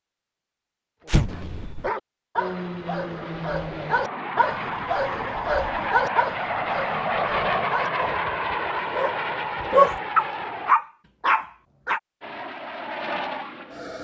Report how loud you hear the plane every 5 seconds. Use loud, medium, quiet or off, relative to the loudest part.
medium, loud, medium.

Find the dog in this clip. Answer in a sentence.
The dog can be heard from 1.1 to 12.0 s.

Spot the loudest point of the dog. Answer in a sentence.
The volume of the dog peaks at 10 seconds.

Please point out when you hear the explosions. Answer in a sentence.
The explosions can be heard from 1.1 to 1.9 s.